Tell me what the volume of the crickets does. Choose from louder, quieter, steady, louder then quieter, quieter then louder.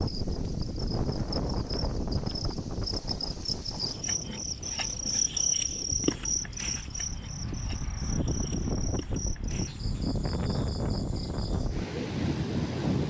louder then quieter.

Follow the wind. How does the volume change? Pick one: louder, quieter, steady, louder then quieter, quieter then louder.
quieter then louder.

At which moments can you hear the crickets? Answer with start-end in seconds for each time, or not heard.
0.0-13.0.